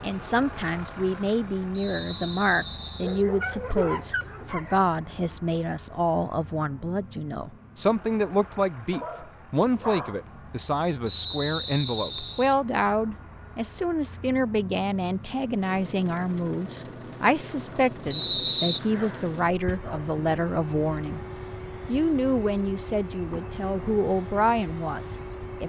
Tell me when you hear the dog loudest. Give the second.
4 s.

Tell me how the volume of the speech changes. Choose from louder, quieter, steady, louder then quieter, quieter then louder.
steady.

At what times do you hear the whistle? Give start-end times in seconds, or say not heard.
1.7-3.2, 11.1-12.6, 18.1-18.8.